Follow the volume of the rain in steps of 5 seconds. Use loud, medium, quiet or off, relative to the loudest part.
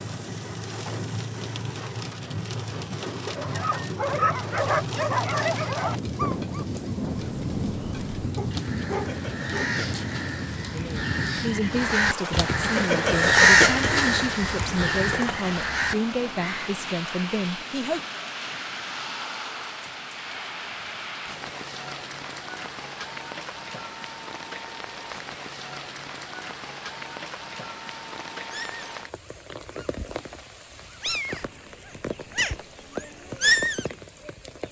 loud, loud, loud, loud, medium, medium, medium.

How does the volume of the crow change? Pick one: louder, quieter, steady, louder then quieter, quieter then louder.
louder then quieter.